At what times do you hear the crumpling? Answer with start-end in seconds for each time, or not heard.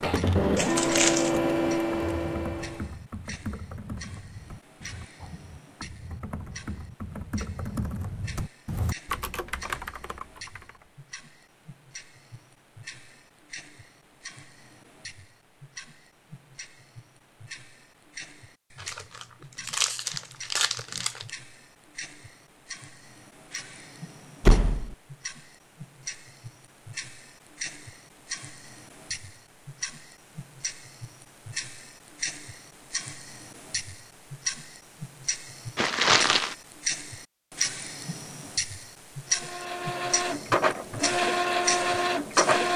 0.6-1.4, 18.8-21.3, 35.8-36.5.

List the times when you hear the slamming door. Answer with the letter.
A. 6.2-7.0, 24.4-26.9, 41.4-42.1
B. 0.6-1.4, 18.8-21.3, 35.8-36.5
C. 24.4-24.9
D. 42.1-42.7
C.